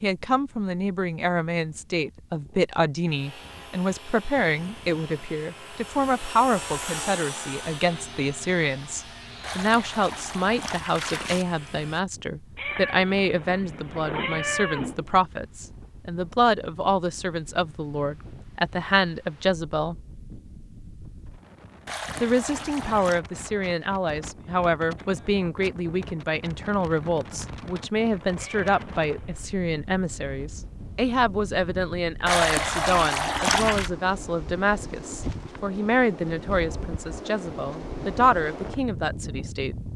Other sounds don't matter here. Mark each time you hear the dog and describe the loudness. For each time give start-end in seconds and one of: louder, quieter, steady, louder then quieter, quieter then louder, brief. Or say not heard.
not heard.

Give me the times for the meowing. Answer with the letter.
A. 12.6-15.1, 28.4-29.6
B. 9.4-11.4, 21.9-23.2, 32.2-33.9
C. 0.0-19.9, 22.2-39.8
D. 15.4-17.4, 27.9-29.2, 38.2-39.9
A.